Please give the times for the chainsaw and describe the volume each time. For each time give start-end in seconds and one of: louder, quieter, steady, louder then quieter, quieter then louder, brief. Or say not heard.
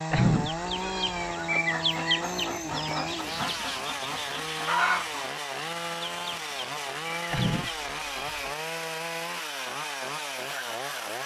0.0-11.2 steady.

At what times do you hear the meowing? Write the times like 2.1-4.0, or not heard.
0.1-1.4, 7.3-8.6.